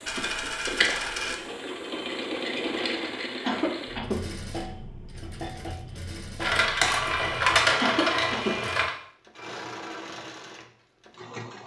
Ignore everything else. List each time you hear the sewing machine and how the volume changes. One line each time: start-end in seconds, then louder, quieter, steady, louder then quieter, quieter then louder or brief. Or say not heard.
0.0-11.6 quieter.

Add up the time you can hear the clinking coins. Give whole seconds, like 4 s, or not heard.
4 s.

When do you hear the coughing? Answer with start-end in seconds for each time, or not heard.
3.4-4.2, 7.8-8.6.